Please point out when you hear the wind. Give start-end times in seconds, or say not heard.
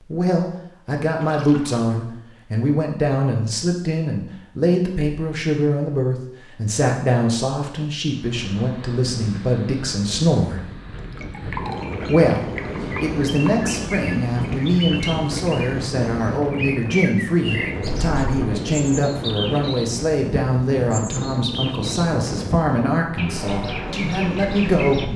8.1-25.1.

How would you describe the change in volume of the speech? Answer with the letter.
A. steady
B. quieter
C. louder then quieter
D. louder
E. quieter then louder
A.